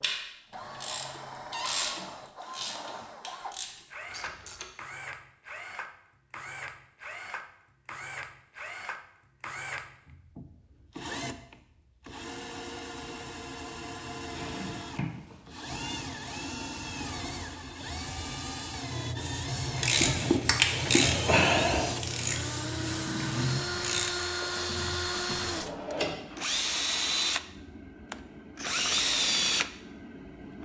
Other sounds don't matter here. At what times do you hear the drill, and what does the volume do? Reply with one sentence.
You can hear the drill from 0.0 to 30.6 s, getting louder.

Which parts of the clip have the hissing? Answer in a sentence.
The hissing can be heard from 18.7 to 23.1 s.